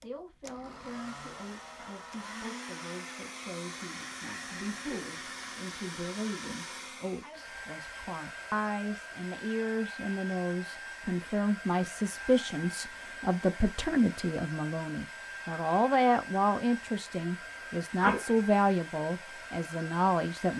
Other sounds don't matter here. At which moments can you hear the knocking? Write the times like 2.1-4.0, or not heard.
not heard.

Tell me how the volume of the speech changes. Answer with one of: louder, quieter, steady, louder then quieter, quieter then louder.
louder.